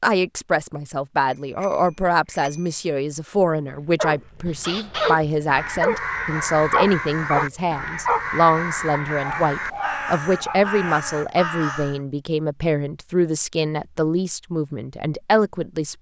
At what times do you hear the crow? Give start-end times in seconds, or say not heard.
4.5-12.0.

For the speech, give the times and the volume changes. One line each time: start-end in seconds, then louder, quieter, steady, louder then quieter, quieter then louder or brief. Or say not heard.
0.0-15.9 steady.